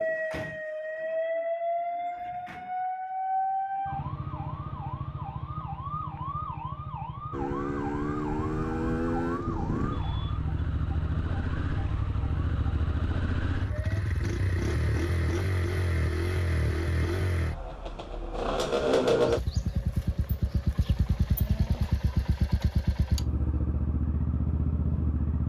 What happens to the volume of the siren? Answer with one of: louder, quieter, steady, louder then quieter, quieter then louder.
quieter.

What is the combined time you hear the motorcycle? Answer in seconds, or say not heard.
18 s.